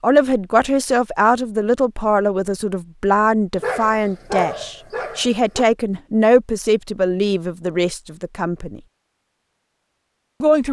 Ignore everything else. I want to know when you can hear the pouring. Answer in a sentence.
The pouring can't be heard in this clip.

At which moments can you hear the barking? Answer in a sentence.
You can hear the barking from 3.5 to 5.7 s.